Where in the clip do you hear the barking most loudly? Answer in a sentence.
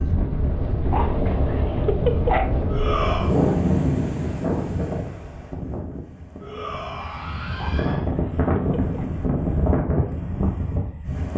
The volume of the barking peaks at 2 seconds.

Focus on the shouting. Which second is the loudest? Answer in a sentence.
The volume of the shouting peaks at 3 seconds.